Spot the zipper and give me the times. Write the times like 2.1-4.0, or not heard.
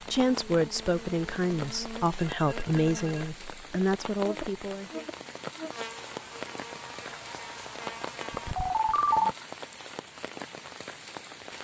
not heard.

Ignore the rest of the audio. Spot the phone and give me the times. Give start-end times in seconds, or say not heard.
2.2-3.5, 8.3-9.3.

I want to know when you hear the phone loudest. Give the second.
9 s.